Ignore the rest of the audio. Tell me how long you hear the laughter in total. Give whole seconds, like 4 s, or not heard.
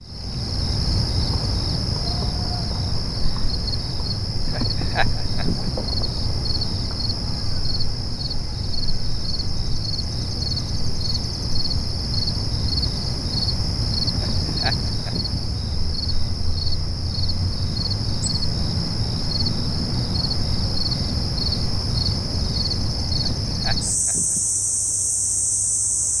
4 s.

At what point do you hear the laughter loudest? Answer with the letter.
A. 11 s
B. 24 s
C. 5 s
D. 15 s
C.